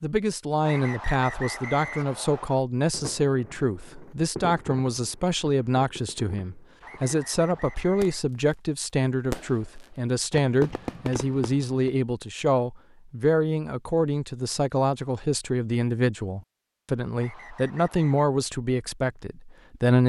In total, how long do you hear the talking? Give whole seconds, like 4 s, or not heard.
20 s.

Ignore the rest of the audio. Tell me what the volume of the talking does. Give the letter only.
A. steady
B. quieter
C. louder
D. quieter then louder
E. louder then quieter
A.